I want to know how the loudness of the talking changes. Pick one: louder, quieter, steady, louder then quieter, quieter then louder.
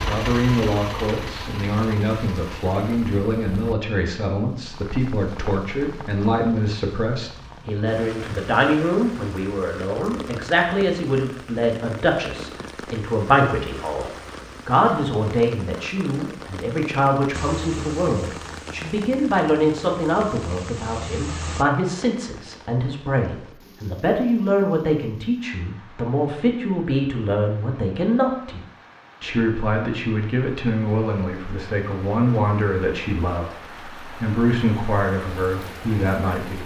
steady.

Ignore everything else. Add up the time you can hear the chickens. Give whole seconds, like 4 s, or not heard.
not heard.